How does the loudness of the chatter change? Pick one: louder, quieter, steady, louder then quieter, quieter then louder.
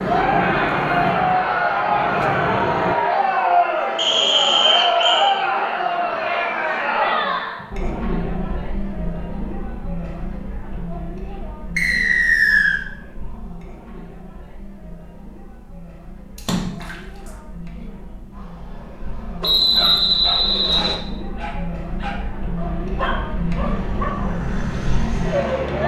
quieter then louder.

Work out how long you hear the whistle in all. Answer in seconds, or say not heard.
4 s.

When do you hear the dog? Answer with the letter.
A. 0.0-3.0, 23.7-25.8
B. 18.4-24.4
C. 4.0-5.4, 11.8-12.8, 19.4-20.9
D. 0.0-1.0
B.